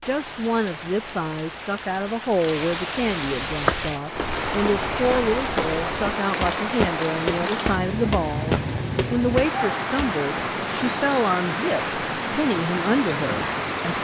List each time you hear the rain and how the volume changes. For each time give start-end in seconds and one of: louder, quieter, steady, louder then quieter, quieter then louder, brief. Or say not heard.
0.0-14.0 louder.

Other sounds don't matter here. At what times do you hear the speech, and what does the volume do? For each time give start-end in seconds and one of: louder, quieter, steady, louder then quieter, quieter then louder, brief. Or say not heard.
0.1-14.0 steady.